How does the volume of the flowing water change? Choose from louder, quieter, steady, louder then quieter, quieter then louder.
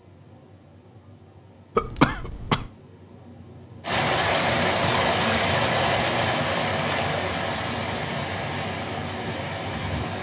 quieter.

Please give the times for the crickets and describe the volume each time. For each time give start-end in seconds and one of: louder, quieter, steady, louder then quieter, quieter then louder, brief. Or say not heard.
0.0-10.1 louder.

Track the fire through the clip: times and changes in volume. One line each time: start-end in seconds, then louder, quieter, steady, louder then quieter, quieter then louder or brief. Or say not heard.
not heard.